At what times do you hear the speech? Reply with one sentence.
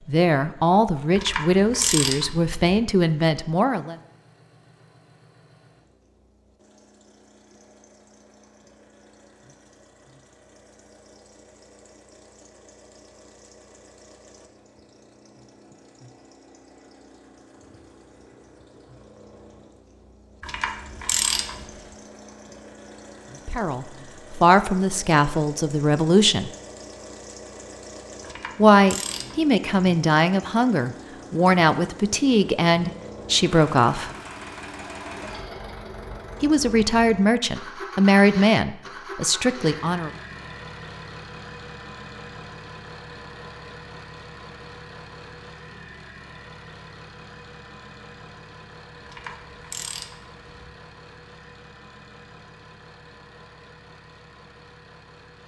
You can hear the speech from 0.1 to 4.0 s, from 23.4 to 26.5 s, from 28.6 to 34.1 s and from 36.4 to 40.1 s.